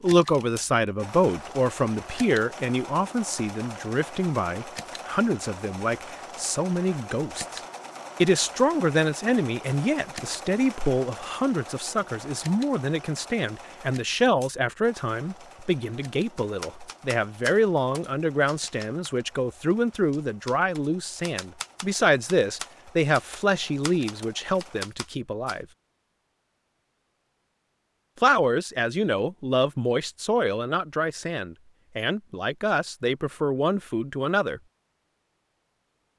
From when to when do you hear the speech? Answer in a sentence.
The speech can be heard from 0.0 to 7.6 s, from 8.2 to 25.6 s and from 28.2 to 34.6 s.